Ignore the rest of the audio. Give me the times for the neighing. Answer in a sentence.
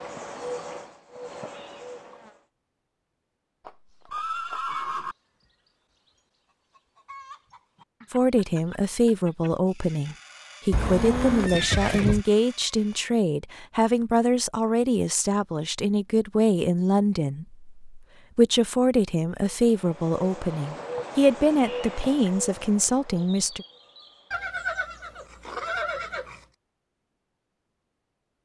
The neighing can be heard from 3.6 to 5.2 s, from 10.7 to 12.2 s and from 24.3 to 26.4 s.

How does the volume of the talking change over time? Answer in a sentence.
The loudness of the talking stays about the same.